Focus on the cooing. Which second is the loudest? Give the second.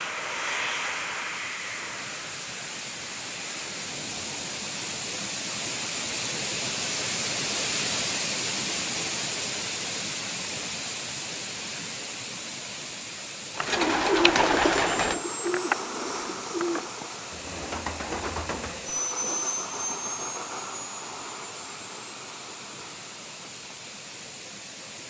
14 s.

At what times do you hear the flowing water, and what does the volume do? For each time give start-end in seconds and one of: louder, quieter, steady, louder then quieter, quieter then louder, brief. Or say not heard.
0.0-25.0 louder then quieter.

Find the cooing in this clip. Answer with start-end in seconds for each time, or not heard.
13.6-19.4.